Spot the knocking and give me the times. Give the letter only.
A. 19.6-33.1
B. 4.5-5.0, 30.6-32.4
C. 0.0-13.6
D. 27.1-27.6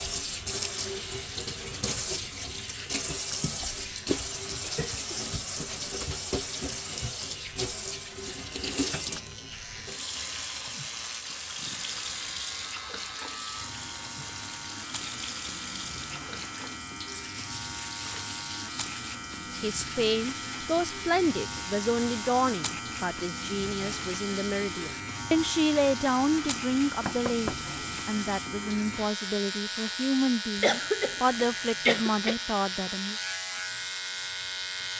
D.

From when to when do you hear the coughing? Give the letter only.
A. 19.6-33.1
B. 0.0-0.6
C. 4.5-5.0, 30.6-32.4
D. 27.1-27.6
C.